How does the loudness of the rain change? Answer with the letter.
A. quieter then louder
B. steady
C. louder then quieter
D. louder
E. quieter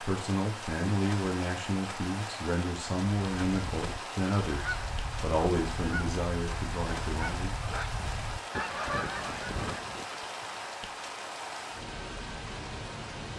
B.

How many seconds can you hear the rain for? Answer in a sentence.
You can hear the rain for 13 seconds altogether.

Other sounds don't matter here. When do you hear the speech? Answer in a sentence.
You can hear the speech from 0.0 to 7.5 s.